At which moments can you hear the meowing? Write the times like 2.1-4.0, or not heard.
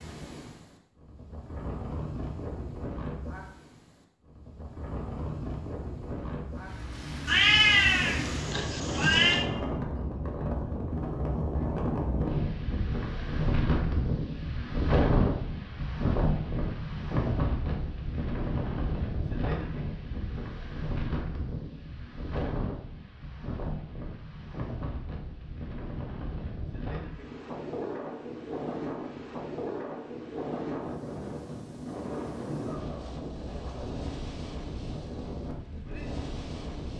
7.2-9.4.